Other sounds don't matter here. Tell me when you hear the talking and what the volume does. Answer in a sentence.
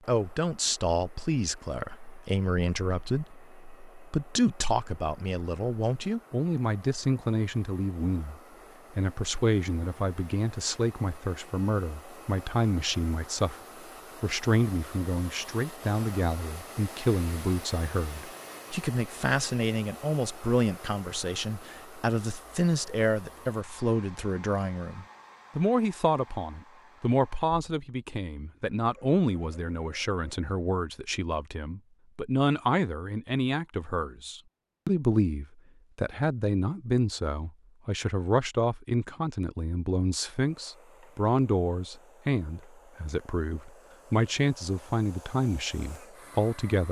You can hear the talking from 0.1 to 13.6 s, at a steady volume; and from 14.2 to 46.8 s, at a steady volume.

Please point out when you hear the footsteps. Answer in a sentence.
The footsteps can't be heard in this clip.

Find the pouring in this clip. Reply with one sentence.
The pouring can't be heard in this clip.